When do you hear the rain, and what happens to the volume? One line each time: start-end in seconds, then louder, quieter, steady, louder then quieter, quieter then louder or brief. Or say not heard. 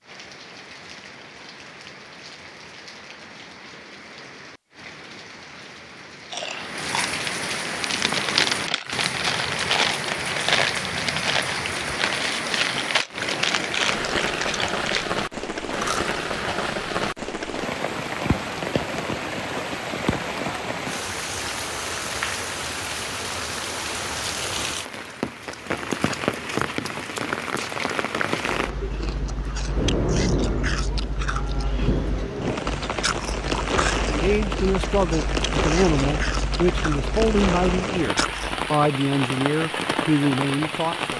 0.0-41.1 louder.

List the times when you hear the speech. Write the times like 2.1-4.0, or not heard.
34.0-41.1.